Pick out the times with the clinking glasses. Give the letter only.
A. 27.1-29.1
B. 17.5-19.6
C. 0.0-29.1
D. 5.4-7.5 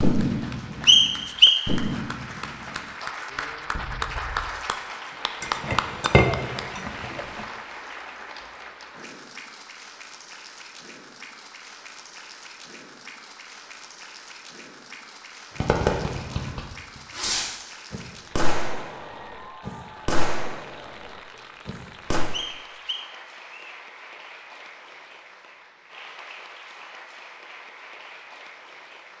D.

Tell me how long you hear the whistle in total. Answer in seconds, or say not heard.
2 s.